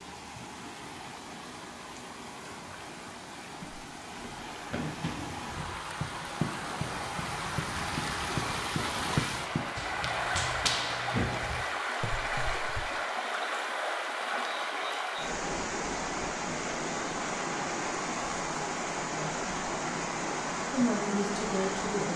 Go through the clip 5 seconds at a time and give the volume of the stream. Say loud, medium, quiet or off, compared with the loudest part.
medium, loud, loud, loud, loud.